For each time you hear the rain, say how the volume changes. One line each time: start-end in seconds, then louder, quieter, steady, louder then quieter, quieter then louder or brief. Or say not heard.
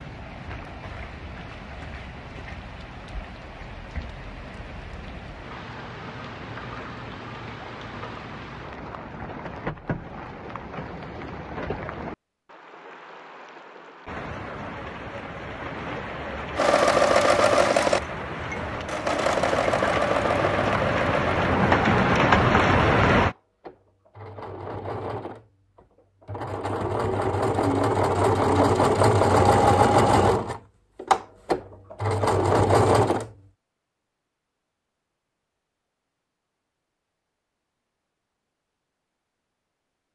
0.0-23.4 louder.